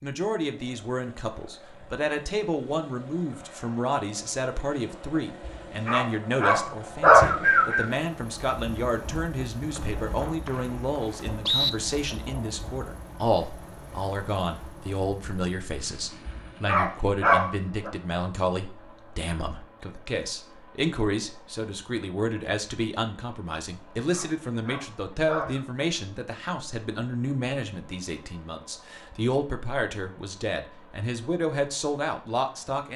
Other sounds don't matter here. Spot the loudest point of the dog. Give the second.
7 s.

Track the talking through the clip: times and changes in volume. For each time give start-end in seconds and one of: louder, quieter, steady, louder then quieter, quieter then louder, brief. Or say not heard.
0.0-32.9 steady.